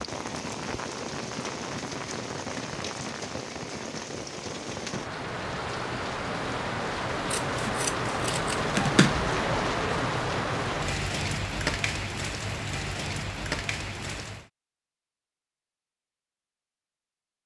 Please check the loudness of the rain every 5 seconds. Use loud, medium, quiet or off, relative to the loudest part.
medium, loud, loud, off.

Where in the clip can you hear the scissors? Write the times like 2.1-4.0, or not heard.
7.3-9.2.